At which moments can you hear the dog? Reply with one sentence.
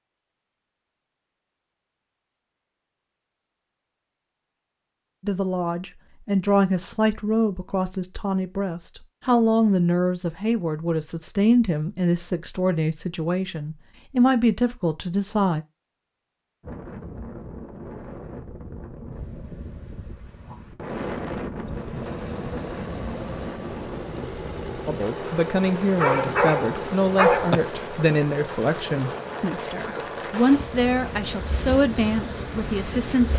You can hear the dog from 25.9 to 27.6 s.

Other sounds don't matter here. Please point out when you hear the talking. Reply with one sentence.
The talking can be heard from 5.2 to 15.6 s and from 24.9 to 33.3 s.